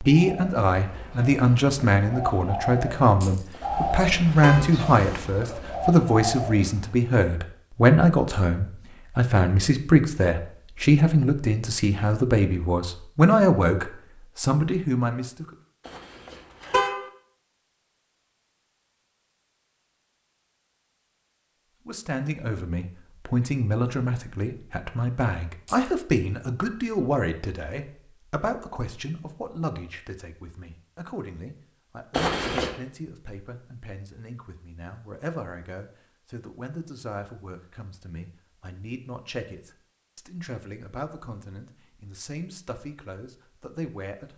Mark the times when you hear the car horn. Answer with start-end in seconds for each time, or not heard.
3.5-4.8, 15.8-17.1, 32.1-32.7.